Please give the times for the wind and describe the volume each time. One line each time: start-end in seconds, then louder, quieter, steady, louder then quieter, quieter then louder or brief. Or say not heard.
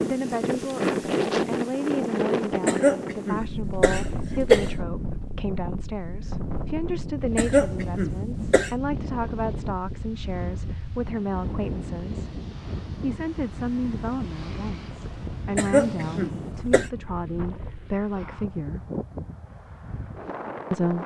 0.0-21.0 quieter.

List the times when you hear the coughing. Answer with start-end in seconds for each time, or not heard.
2.6-4.7, 7.3-8.7, 15.6-16.9.